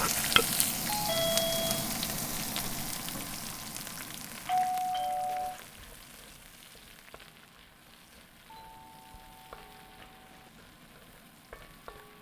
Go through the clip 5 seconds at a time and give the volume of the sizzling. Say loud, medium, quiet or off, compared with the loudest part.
loud, quiet, quiet.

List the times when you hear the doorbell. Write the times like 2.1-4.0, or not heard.
0.8-1.9, 4.5-5.7, 8.4-10.5.